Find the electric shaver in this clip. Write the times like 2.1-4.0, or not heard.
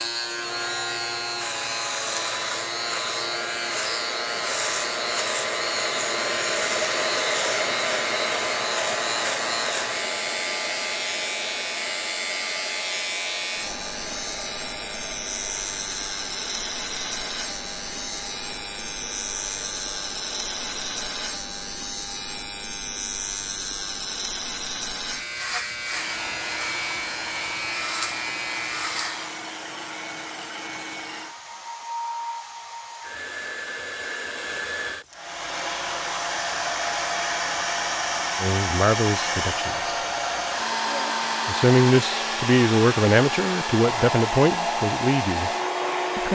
0.0-29.4.